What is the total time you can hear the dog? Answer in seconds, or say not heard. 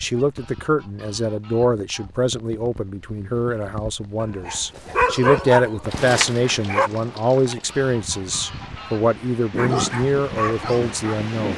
5 s.